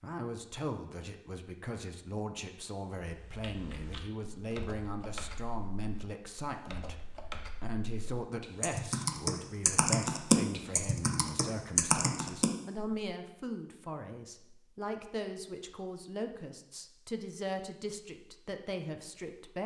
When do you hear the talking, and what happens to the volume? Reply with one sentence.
You can hear the talking from 0.0 to 7.0 s, at a steady volume; and from 7.6 to 19.6 s, at a steady volume.